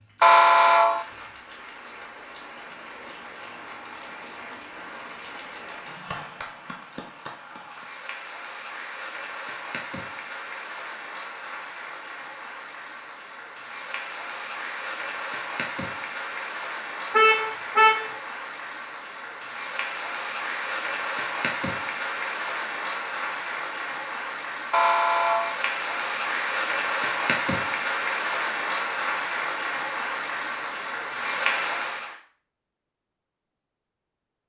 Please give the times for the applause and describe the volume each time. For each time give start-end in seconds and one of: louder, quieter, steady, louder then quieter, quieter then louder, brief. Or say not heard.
0.0-32.1 louder.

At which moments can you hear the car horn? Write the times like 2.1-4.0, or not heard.
0.2-1.1, 17.1-18.1, 24.7-25.6.